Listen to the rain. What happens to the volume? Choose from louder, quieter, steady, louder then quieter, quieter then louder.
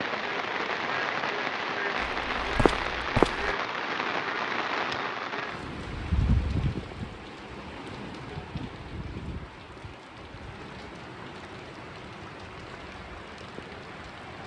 quieter.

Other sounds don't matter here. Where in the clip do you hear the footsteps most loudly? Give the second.
3 s.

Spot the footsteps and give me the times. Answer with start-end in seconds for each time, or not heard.
2.0-3.5.